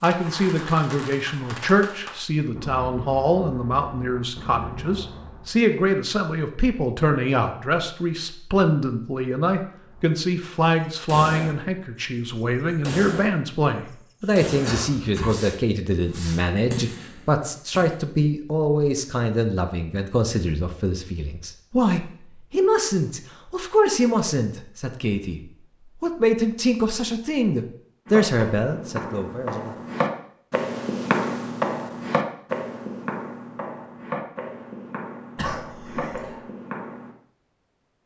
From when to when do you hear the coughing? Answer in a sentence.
The coughing can be heard from 14.4 to 15.3 s and from 35.4 to 36.4 s.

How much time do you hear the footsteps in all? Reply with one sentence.
You can hear the footsteps for 9 seconds altogether.